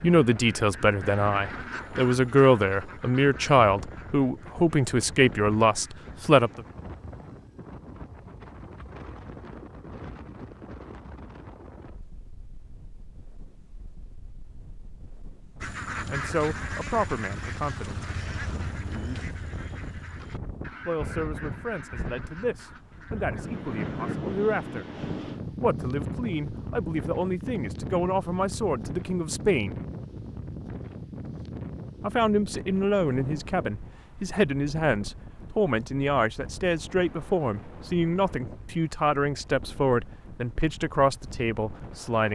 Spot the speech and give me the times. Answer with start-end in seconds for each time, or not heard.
0.0-6.7, 16.1-18.1, 20.9-24.9, 25.6-29.8, 32.0-42.3.